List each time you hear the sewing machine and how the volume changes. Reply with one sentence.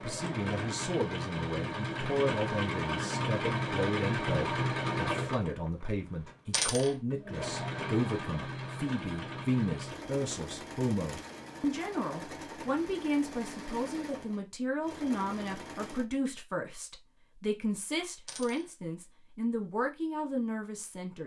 The sewing machine can be heard from 0.0 to 16.1 s, getting quieter.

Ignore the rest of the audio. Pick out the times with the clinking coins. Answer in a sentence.
The clinking coins can be heard from 6.5 to 7.0 s and from 18.2 to 18.7 s.